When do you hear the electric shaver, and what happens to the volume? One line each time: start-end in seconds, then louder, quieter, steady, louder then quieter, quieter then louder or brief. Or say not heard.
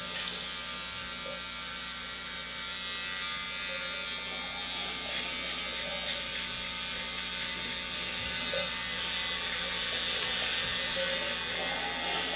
0.0-12.3 steady.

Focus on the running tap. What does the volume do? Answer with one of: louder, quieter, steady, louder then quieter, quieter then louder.
louder.